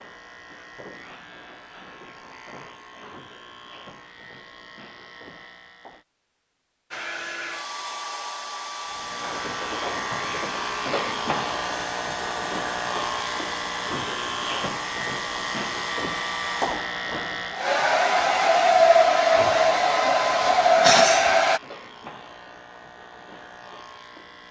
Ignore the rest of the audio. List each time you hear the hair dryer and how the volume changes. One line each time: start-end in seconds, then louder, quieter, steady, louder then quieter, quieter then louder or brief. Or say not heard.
6.9-21.6 louder.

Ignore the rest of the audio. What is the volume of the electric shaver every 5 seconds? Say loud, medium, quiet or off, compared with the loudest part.
quiet, medium, loud, loud, quiet.